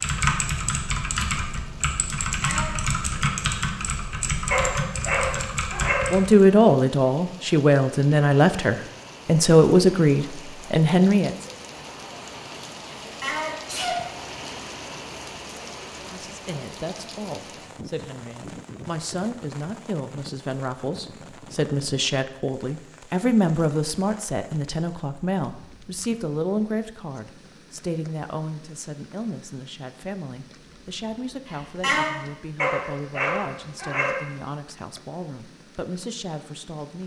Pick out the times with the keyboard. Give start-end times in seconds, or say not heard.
0.0-6.5.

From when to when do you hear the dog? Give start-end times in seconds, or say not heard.
4.5-6.2, 32.5-34.2.